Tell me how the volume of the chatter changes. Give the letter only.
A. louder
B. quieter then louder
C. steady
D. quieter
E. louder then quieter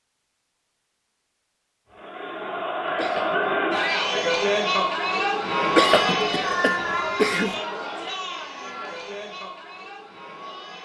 D.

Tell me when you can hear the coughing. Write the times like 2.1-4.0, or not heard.
2.9-3.4, 5.7-7.6.